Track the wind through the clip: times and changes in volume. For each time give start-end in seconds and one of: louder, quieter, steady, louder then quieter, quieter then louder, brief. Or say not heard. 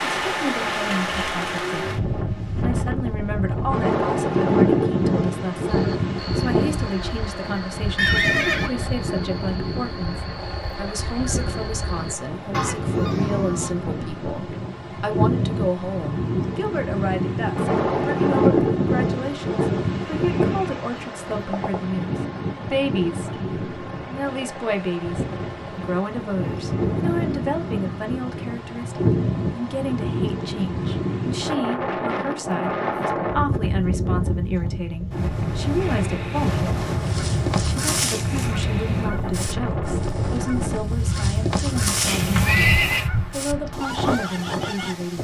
0.0-45.1 steady.